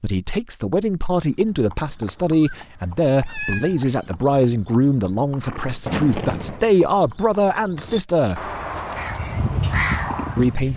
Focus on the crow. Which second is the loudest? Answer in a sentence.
The volume of the crow peaks at 10 seconds.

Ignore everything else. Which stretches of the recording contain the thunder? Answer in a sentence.
The thunder can be heard from 5.8 to 6.6 s.